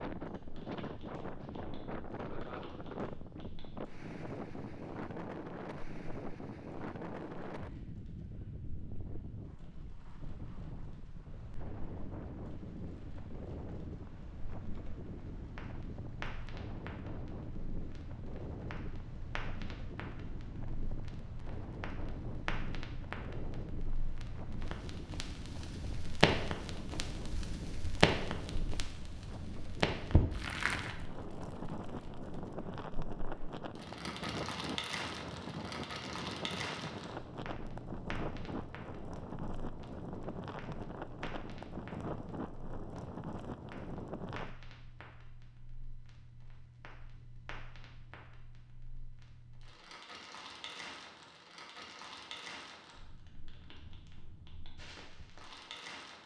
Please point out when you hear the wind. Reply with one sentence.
You can hear the wind from 0.0 to 44.5 s.